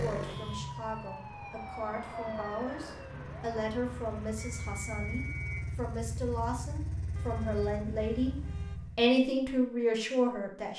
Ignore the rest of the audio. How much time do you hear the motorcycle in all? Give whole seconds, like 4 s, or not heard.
9 s.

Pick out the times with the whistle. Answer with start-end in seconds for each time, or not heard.
4.3-5.7.